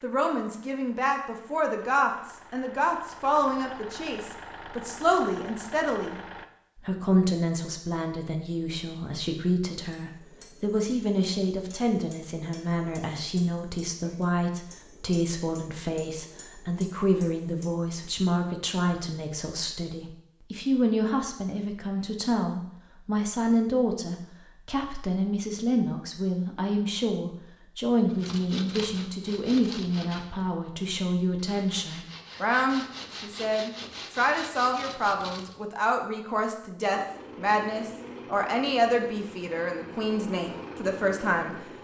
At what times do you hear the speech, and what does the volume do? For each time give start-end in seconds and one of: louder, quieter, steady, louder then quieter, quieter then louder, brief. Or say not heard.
0.0-41.5 steady.